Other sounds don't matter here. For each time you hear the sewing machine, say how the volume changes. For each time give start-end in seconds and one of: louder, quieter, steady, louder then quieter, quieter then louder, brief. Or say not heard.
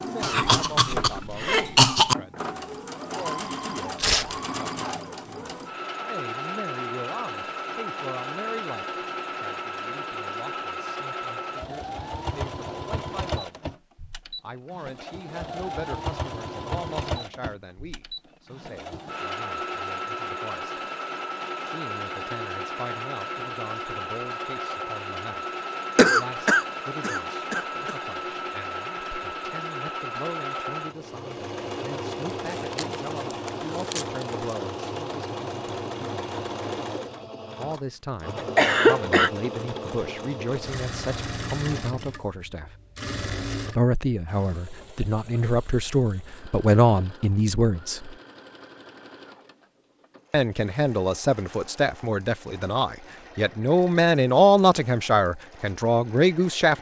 0.0-56.7 quieter.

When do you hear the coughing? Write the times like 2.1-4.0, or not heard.
0.2-2.1, 25.9-27.9, 38.4-39.3.